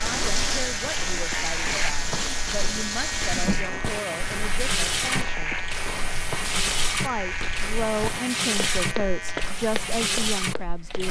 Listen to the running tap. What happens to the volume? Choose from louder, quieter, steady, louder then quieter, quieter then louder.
steady.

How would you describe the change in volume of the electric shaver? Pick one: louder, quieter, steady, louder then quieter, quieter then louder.
steady.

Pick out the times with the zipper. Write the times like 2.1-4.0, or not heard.
0.0-0.8.